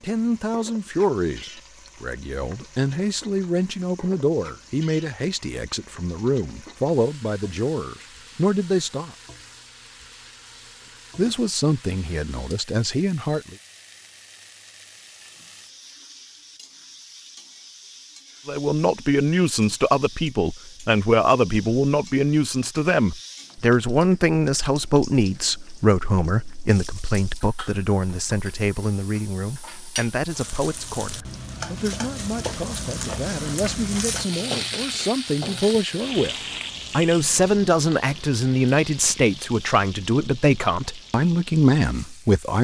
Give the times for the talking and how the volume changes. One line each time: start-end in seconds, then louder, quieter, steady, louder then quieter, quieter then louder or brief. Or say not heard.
0.0-9.2 steady
11.2-13.6 brief
18.4-42.5 quieter then louder.